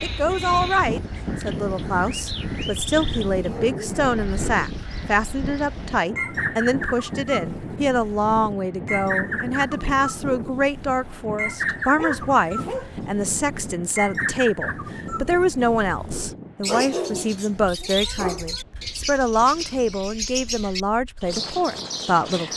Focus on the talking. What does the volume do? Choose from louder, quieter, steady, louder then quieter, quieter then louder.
steady.